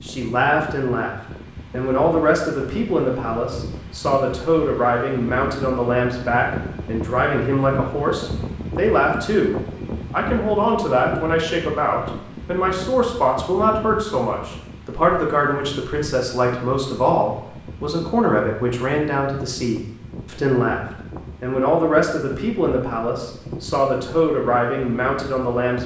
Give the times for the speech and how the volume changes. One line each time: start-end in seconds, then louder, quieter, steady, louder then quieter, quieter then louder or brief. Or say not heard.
0.0-25.8 steady.